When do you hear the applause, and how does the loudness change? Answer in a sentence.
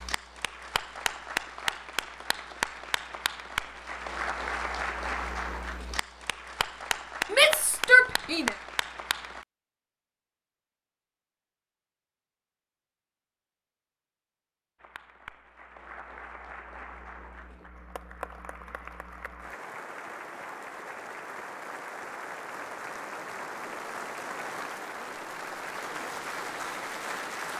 You can hear the applause from 0.0 to 9.4 s, at a steady volume; and from 14.8 to 27.5 s, getting louder.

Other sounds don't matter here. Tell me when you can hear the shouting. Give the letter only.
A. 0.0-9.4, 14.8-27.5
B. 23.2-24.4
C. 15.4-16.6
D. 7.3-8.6
D.